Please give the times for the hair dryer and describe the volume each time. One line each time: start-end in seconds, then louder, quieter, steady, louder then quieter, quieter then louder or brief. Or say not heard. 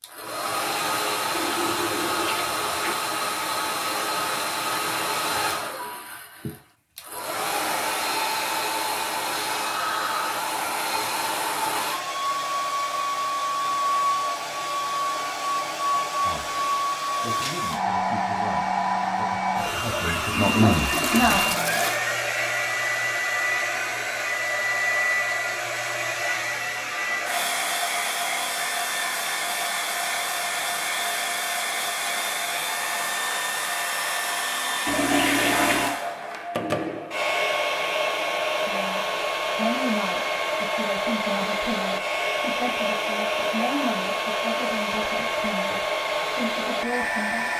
0.0-47.5 steady.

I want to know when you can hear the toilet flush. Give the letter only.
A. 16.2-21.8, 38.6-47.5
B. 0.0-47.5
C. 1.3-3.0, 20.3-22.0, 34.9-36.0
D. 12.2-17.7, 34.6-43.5
C.